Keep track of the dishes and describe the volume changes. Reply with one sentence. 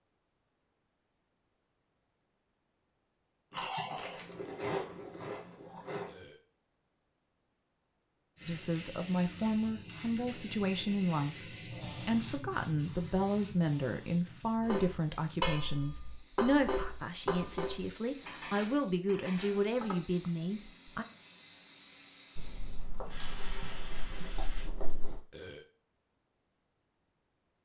The volume of the dishes goes down.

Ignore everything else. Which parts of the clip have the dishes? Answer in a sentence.
You can hear the dishes from 14.6 to 20.0 s.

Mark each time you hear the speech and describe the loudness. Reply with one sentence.
You can hear the speech from 8.4 to 21.1 s, at a steady volume.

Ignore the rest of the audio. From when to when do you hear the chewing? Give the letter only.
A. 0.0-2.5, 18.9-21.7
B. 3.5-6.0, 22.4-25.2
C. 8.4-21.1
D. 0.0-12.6
B.